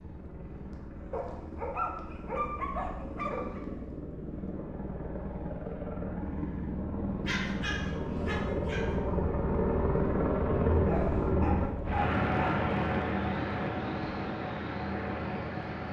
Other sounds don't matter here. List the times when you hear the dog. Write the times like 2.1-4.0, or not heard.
1.1-3.6, 7.2-8.9, 10.8-12.8.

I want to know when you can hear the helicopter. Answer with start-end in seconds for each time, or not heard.
0.0-15.8.